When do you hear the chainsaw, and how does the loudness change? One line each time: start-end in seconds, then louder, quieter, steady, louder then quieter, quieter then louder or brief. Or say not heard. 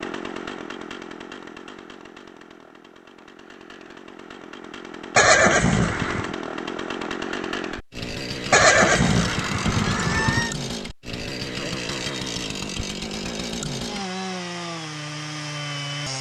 0.0-16.1 louder.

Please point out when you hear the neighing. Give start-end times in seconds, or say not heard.
5.2-6.3, 8.5-10.6.